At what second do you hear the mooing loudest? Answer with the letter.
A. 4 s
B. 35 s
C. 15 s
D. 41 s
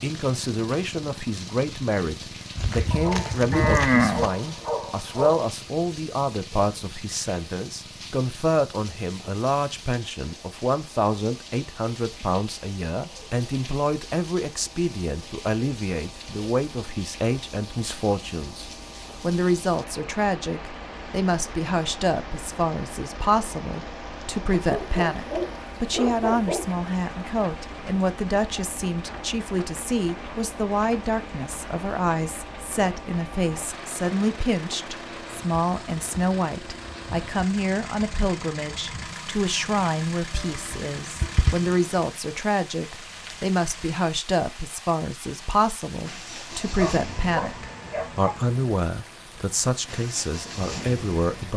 A.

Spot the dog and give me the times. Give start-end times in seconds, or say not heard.
2.9-5.4, 24.6-26.8, 46.6-48.4.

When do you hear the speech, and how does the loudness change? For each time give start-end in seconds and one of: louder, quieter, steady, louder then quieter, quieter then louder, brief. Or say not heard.
0.0-51.5 steady.